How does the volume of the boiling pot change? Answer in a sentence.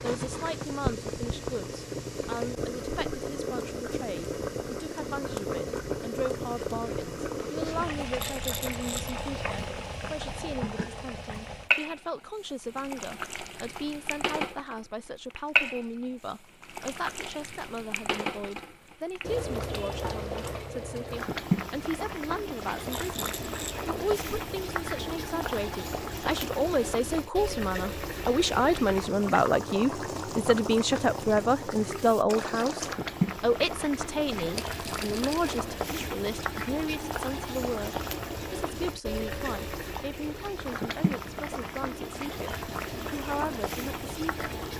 The volume of the boiling pot stays about the same.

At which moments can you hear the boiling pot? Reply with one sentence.
The boiling pot can be heard from 0.0 to 44.7 s.